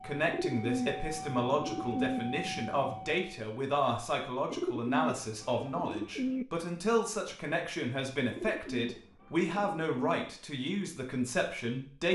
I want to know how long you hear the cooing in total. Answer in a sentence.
The cooing can be heard for 6 seconds in total.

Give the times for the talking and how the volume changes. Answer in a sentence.
You can hear the talking from 0.0 to 12.1 s, at a steady volume.